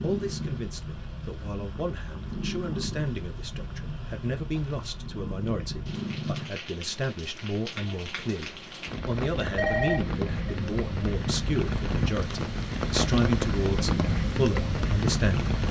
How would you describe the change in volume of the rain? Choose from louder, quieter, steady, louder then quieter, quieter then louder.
louder.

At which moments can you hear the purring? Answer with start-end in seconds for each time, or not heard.
0.0-6.5.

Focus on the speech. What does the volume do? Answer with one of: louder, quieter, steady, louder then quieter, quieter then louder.
louder.